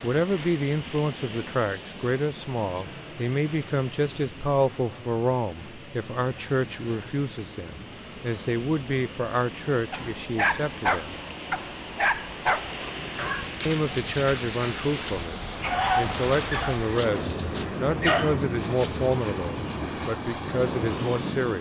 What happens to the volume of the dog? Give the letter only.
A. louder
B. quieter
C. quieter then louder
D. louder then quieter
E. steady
C.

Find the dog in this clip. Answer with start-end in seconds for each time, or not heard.
9.9-19.4.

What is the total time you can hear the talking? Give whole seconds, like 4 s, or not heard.
19 s.